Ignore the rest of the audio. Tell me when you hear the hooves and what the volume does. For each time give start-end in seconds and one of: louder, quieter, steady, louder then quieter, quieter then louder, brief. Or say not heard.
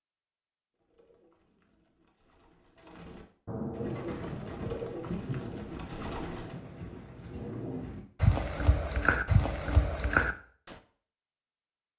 3.8-10.8 quieter then louder.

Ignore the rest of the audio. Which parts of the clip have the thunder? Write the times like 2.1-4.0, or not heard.
3.5-8.0.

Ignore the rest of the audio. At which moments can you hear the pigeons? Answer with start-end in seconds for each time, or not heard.
0.7-6.6.